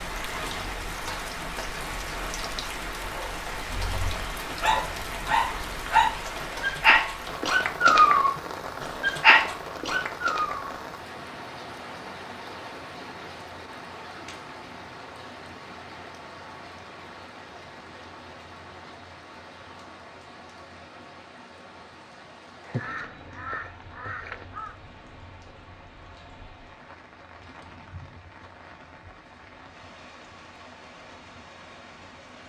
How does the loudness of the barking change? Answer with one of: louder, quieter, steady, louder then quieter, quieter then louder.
louder.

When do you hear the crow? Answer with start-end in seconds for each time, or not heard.
22.6-24.8.